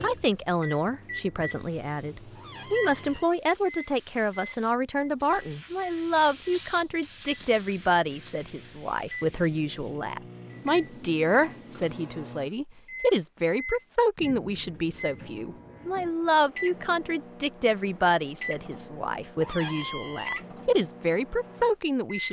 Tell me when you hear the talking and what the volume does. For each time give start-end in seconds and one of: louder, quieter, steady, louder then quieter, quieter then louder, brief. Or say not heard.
0.0-22.2 steady.